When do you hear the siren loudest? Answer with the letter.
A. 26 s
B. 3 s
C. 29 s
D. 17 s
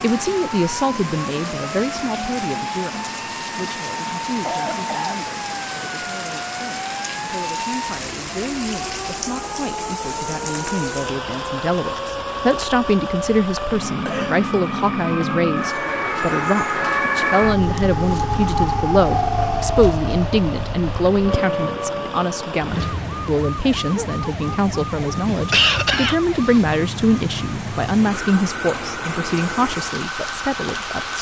D.